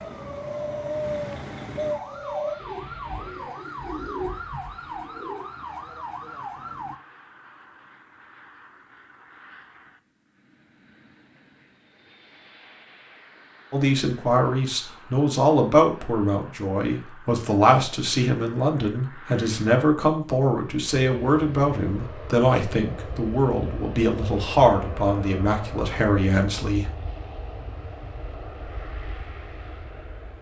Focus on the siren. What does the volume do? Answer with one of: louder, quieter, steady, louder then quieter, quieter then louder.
steady.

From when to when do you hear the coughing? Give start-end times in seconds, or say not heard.
not heard.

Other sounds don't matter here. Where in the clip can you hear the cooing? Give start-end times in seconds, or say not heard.
0.0-5.5.